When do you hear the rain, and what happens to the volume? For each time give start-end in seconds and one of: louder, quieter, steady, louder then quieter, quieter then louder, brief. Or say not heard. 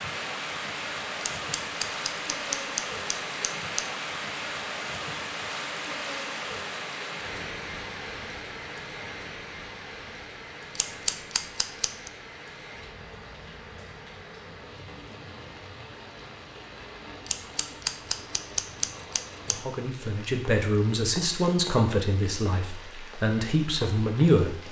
0.0-24.6 quieter.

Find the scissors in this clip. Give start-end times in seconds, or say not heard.
1.3-3.9, 10.8-12.1, 17.2-19.6.